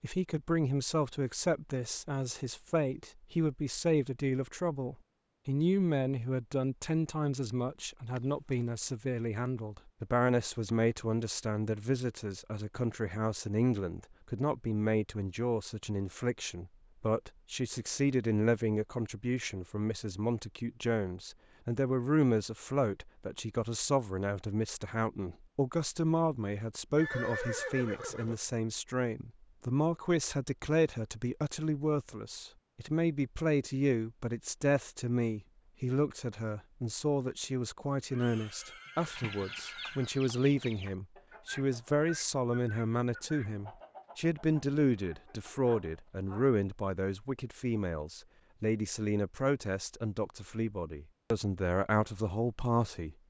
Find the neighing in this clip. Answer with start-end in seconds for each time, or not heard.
8.2-8.7, 26.9-28.4, 38.1-40.2.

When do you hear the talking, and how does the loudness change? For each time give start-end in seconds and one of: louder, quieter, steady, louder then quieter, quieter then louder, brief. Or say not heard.
0.0-53.1 steady.